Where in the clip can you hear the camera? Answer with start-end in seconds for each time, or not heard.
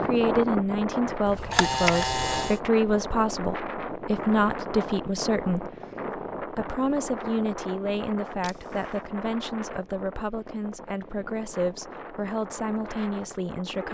1.2-2.6, 8.4-8.8.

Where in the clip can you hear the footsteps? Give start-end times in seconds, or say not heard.
not heard.